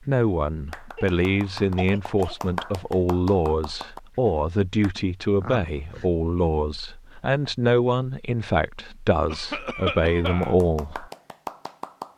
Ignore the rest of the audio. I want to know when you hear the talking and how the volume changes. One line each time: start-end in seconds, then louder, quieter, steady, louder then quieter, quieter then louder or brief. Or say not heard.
0.0-11.1 steady.